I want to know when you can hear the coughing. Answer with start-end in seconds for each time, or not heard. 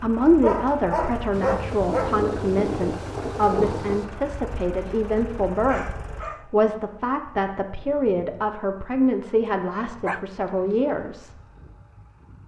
not heard.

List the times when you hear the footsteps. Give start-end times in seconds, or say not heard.
not heard.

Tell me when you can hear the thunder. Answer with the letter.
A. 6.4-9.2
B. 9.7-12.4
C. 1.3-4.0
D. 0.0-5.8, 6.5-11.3
C.